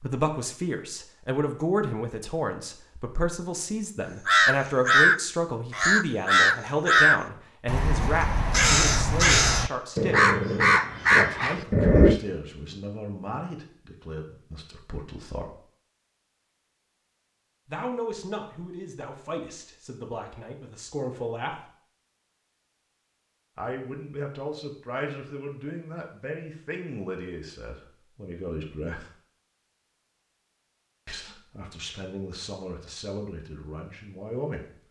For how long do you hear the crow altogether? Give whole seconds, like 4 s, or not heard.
8 s.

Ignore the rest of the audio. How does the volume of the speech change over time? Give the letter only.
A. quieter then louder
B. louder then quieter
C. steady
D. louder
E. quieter
E.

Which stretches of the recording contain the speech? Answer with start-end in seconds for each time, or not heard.
0.0-10.2, 11.1-15.6, 17.6-21.7, 23.6-29.1, 31.1-34.6.